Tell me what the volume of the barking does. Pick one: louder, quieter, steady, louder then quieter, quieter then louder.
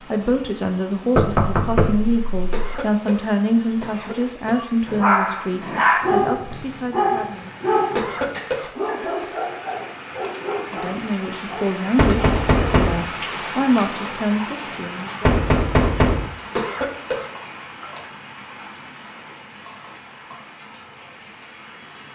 quieter.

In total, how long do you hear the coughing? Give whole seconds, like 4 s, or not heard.
4 s.